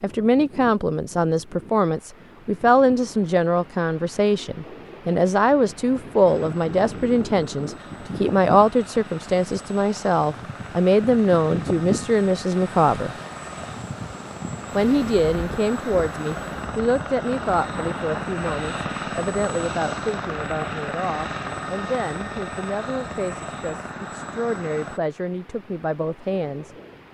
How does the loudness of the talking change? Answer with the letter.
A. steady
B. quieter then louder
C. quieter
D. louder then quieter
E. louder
C.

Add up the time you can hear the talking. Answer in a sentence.
You can hear the talking for 25 seconds altogether.